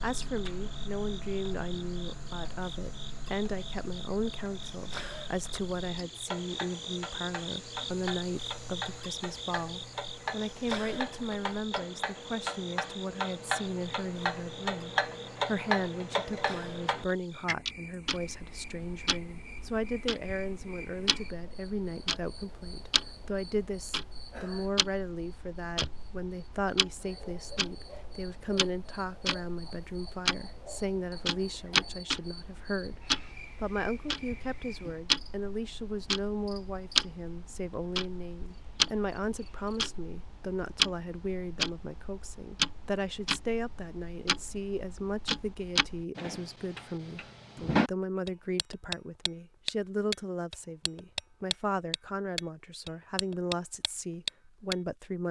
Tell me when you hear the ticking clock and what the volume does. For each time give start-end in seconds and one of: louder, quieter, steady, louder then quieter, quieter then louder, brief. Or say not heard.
0.0-54.8 louder.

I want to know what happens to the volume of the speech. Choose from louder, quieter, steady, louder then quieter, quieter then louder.
steady.